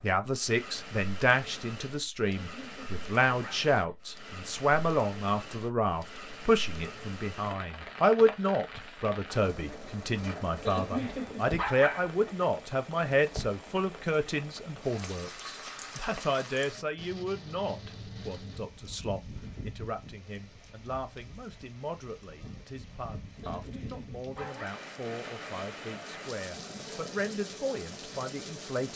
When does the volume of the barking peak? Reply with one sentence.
The volume of the barking peaks at 12 seconds.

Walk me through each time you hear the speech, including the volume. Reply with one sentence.
The speech can be heard from 0.0 to 28.9 s, getting quieter.